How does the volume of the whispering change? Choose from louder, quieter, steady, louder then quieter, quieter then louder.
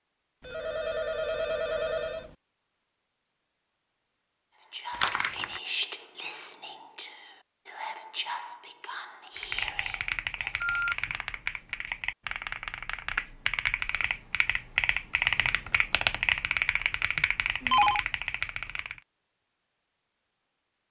quieter.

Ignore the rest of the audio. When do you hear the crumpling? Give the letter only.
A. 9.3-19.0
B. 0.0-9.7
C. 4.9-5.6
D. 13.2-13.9
C.